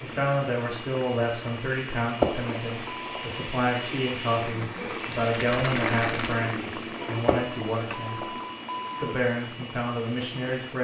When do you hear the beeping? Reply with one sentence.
You can hear the beeping from 2.1 to 3.4 s and from 7.2 to 9.2 s.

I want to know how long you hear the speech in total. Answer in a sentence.
You can hear the speech for 10 seconds altogether.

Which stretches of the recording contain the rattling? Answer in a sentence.
The rattling can be heard from 5.1 to 6.4 s.